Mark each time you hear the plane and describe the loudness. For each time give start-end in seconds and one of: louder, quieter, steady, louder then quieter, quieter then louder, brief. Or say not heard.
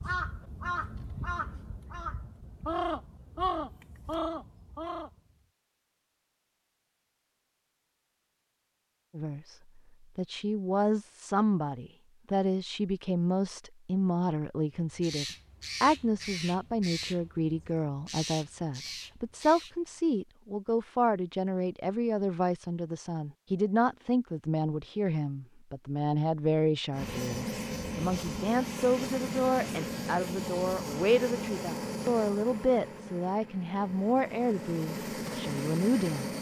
26.9-36.3 quieter then louder.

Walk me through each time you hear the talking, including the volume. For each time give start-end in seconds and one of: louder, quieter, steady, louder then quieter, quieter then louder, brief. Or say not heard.
9.2-36.3 steady.